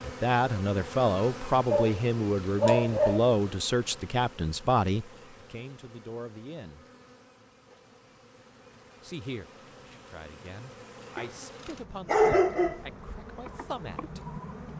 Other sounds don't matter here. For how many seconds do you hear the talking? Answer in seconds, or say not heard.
12 s.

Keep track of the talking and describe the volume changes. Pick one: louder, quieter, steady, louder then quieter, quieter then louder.
quieter.